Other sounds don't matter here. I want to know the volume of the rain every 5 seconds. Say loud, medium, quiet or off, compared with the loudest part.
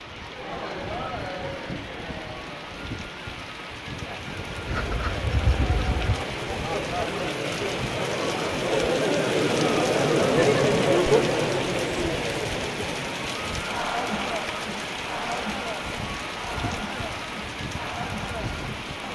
medium, loud, loud, loud.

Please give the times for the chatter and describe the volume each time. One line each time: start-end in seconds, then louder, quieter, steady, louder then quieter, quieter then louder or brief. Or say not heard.
0.0-19.0 louder then quieter.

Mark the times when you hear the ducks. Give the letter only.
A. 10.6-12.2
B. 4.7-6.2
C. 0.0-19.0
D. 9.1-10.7
B.